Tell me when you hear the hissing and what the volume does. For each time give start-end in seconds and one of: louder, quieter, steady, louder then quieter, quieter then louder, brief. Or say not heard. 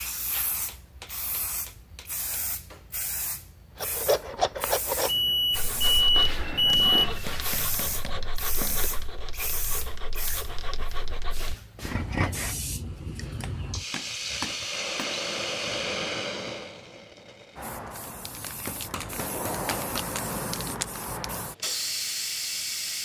0.0-23.0 louder.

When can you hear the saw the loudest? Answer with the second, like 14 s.
4 s.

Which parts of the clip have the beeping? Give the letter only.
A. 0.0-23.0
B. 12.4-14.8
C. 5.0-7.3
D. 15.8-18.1
C.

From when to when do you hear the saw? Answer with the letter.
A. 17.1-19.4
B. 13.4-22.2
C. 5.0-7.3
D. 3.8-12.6
D.